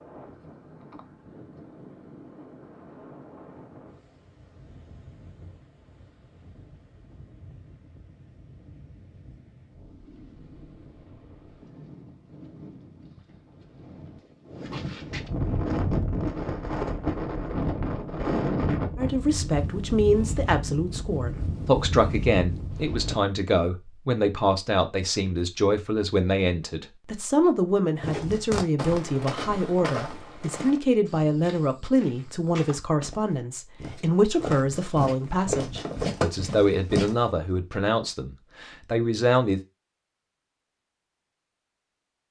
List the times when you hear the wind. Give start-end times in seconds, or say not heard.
0.0-23.1.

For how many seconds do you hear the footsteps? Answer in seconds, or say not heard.
9 s.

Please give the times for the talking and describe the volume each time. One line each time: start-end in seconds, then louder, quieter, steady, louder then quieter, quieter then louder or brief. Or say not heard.
18.9-39.6 steady.